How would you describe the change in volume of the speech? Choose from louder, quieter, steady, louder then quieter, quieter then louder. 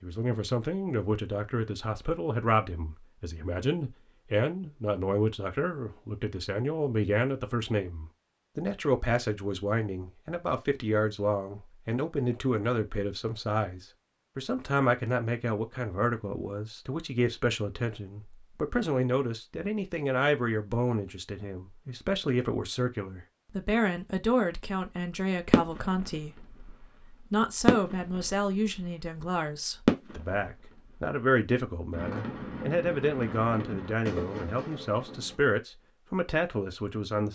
steady.